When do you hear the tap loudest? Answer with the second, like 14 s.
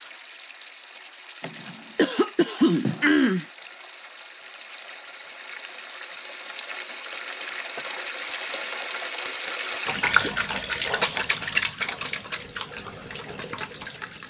11 s.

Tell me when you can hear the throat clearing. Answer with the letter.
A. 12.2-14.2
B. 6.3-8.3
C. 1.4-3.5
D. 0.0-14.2
C.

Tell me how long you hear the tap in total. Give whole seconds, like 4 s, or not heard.
14 s.